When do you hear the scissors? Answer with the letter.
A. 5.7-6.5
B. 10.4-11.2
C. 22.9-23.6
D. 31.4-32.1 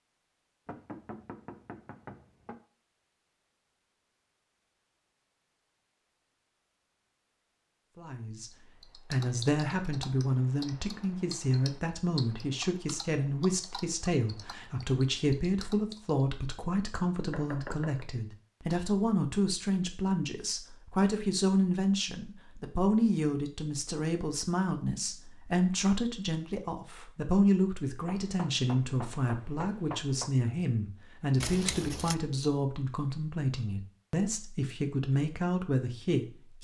D.